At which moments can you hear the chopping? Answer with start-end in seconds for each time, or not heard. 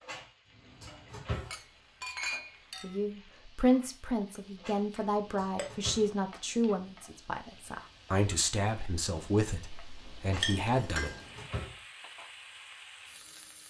not heard.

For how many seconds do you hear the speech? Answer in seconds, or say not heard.
8 s.